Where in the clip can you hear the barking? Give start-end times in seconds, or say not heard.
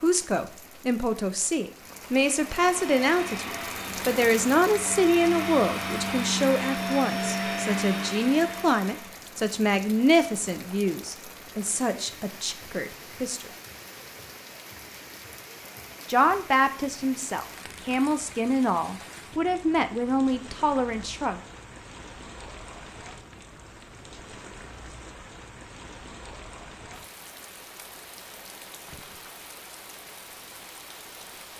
not heard.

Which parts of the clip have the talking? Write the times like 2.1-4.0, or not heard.
0.0-13.5, 16.1-21.4.